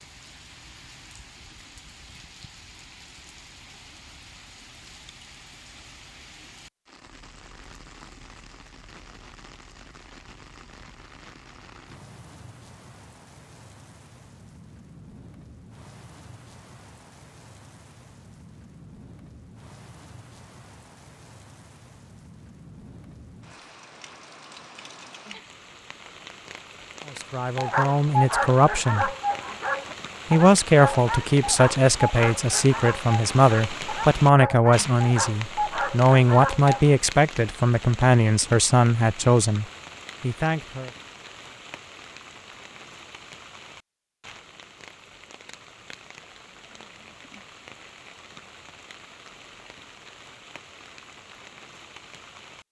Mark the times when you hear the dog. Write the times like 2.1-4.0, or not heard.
27.6-37.0.